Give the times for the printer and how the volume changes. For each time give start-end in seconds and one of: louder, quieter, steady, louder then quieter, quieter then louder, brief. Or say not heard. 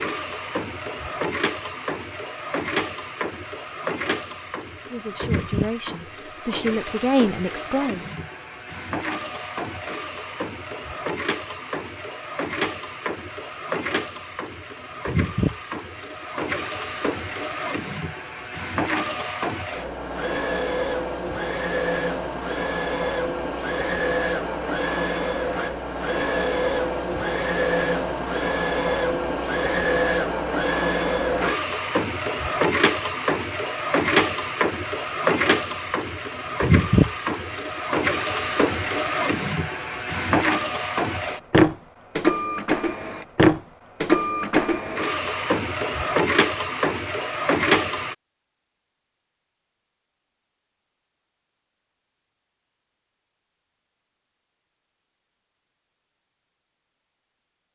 0.0-48.1 louder.